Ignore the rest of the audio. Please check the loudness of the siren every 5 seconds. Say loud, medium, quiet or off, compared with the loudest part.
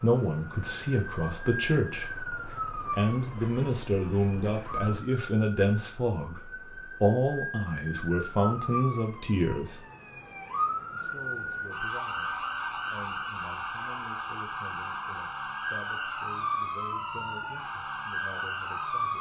medium, medium, loud, loud.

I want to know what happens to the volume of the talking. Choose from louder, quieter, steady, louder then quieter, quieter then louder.
quieter.